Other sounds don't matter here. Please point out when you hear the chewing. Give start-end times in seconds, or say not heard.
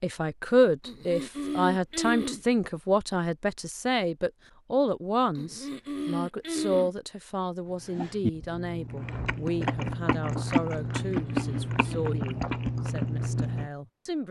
7.8-13.7.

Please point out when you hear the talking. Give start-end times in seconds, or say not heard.
0.0-14.2.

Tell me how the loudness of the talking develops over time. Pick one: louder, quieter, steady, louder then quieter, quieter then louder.
quieter.